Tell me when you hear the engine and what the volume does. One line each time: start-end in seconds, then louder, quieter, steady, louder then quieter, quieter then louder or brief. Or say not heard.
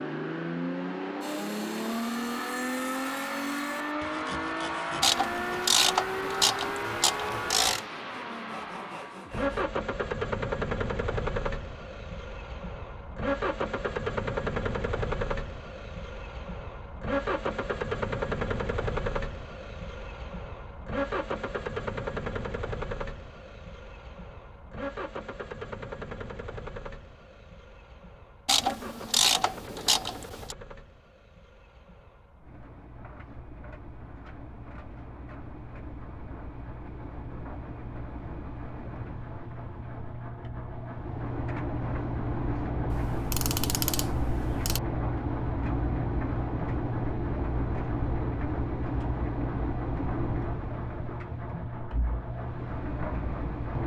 0.0-53.8 quieter then louder.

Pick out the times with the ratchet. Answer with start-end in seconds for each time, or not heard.
5.0-7.8, 28.4-30.6, 42.9-44.8.